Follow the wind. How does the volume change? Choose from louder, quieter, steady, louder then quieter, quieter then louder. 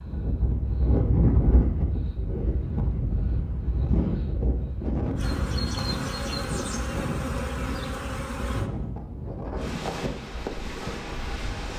quieter.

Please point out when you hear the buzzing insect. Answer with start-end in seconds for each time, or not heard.
5.2-8.7.